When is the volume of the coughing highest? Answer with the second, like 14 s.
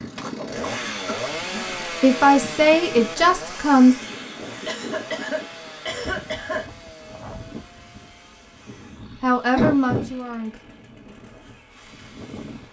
10 s.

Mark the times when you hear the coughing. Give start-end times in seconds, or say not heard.
0.2-1.4, 4.7-6.7, 9.6-10.1.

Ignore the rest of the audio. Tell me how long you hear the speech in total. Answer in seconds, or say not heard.
4 s.